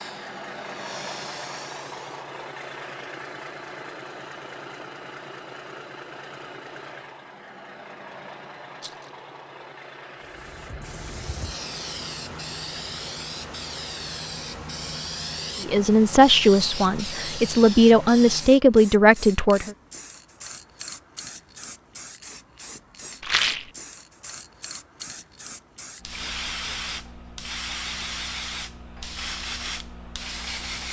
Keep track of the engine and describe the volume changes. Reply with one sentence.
The loudness of the engine goes down.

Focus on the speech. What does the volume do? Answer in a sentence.
The loudness of the speech goes down, then up.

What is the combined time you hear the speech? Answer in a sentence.
The speech can be heard for 4 seconds in total.